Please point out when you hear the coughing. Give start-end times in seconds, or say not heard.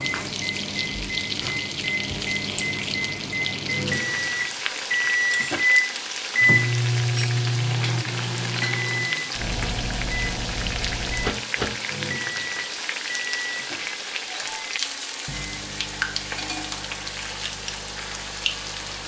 not heard.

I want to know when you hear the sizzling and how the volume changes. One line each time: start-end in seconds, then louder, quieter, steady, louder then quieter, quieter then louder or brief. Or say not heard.
0.0-19.0 steady.